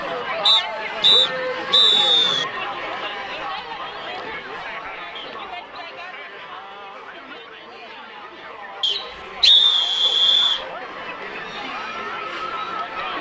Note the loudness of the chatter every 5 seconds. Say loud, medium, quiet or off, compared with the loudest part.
loud, medium, loud.